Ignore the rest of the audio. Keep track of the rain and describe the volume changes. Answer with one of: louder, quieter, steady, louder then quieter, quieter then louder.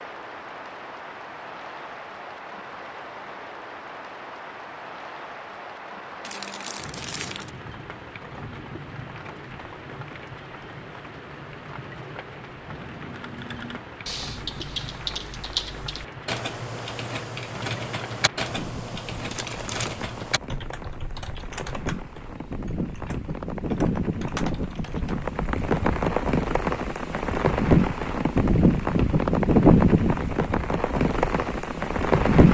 louder.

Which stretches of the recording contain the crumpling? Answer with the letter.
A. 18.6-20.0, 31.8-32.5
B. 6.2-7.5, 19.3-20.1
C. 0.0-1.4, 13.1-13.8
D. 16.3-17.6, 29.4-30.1
B.